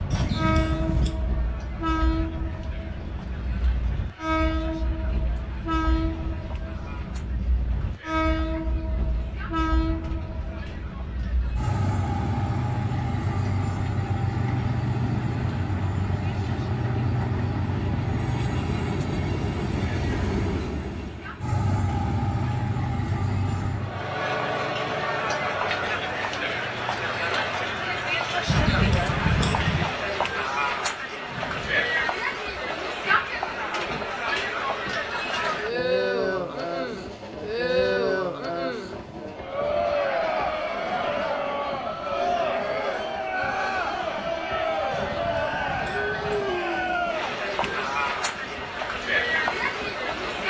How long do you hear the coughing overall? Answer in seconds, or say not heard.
4 s.